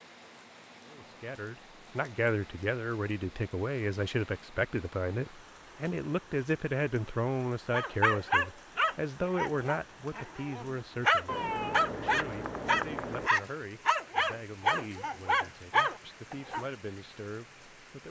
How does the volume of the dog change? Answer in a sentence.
The loudness of the dog stays about the same.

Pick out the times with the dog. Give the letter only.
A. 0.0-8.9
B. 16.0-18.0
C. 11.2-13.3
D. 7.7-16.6
D.